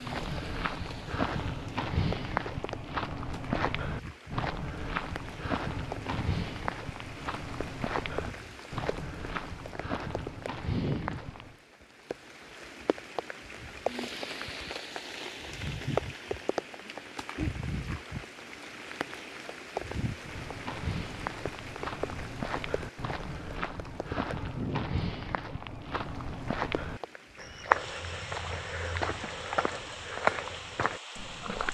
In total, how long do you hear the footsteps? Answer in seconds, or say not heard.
23 s.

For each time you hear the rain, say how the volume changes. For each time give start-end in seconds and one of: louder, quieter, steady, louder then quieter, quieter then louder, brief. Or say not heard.
0.0-31.6 louder then quieter.